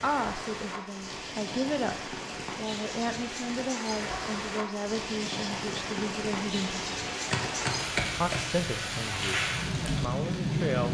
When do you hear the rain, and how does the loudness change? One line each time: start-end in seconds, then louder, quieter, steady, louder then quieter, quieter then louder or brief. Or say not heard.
0.0-10.9 louder.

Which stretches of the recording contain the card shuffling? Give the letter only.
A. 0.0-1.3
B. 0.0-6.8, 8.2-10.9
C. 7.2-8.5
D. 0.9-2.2
C.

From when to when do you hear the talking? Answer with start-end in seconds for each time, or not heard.
0.0-6.8, 8.2-10.9.